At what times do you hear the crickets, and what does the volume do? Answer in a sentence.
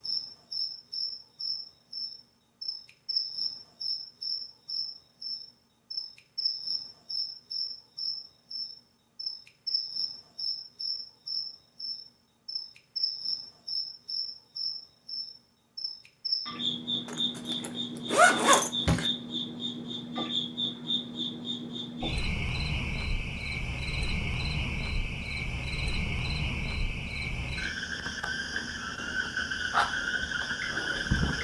You can hear the crickets from 0.0 to 31.3 s, at a steady volume.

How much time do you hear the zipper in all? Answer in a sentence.
The zipper can be heard for 2 seconds in total.